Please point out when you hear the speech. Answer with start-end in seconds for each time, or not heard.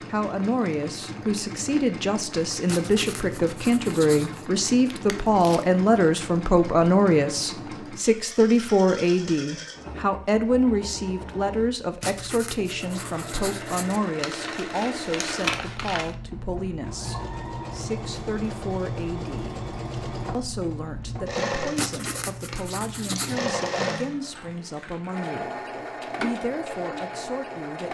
0.0-19.6, 20.3-27.8.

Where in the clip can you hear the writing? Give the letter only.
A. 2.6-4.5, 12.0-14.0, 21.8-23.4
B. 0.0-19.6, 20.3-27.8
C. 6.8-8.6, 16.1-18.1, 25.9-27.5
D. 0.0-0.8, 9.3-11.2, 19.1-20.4
A.